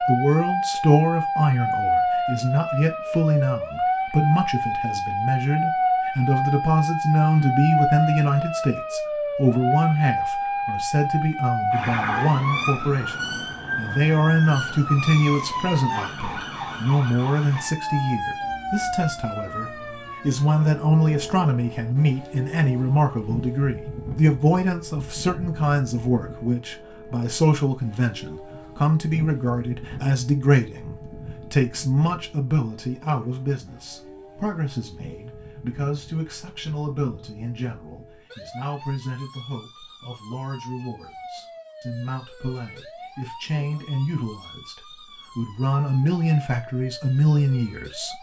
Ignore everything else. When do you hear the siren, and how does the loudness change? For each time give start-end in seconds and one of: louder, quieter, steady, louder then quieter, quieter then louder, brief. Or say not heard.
0.0-48.1 quieter.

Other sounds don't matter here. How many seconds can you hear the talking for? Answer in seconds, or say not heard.
48 s.